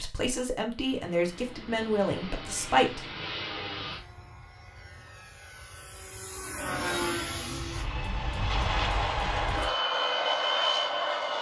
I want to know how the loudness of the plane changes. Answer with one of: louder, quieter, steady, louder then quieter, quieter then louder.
louder.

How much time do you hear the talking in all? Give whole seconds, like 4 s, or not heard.
3 s.